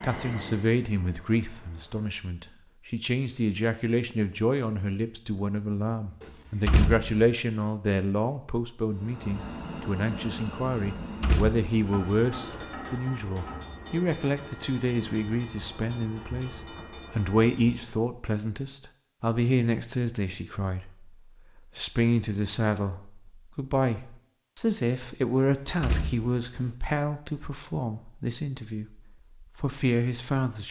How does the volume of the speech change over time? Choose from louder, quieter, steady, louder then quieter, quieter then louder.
steady.